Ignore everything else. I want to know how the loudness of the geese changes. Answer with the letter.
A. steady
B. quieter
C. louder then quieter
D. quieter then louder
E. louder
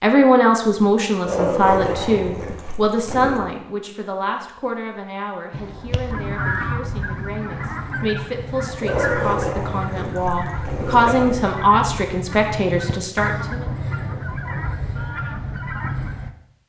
A.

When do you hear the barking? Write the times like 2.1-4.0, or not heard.
1.2-3.5, 8.8-11.4.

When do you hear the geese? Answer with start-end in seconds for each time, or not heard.
5.5-16.3.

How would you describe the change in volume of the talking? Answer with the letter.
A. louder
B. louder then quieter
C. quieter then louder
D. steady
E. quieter
C.